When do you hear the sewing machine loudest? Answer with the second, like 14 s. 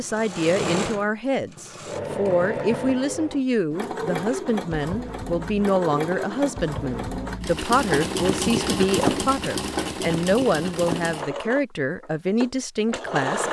9 s.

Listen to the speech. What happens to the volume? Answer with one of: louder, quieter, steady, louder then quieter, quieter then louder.
steady.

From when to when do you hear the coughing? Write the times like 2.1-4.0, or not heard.
not heard.